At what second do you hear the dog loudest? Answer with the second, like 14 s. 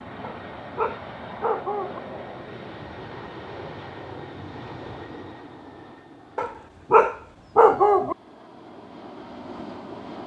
8 s.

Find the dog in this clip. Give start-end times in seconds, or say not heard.
0.2-2.0, 6.3-8.2.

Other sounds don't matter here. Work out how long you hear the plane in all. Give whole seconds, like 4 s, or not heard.
10 s.